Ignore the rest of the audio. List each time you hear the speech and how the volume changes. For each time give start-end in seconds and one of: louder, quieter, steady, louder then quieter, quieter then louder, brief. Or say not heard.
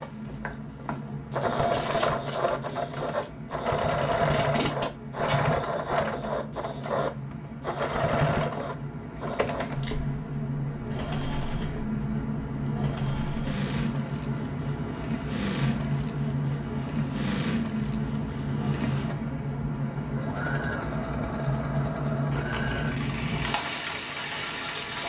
not heard.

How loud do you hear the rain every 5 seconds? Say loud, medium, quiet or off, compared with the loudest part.
medium, medium, loud, loud, loud.